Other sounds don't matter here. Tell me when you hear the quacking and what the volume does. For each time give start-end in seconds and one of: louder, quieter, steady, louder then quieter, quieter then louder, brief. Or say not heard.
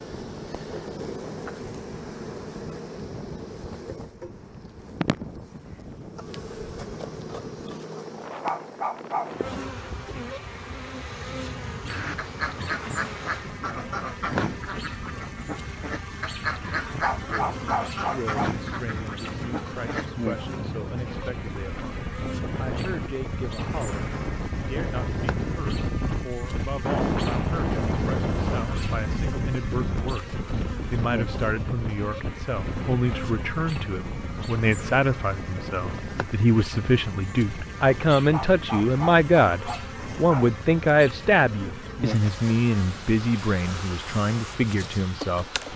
11.8-20.1 steady.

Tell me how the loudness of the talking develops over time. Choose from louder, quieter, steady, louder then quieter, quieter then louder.
louder.